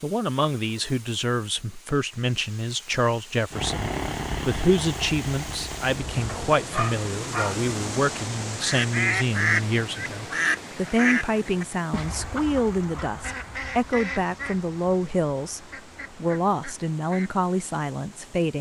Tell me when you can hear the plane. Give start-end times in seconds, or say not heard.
3.5-6.3.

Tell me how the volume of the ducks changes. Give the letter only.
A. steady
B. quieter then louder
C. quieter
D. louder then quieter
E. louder
C.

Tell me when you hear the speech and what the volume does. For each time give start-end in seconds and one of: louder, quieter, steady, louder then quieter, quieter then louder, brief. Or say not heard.
0.0-18.5 steady.